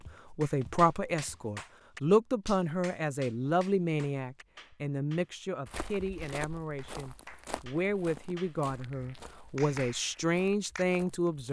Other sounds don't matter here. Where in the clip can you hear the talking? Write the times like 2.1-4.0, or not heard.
0.0-11.4.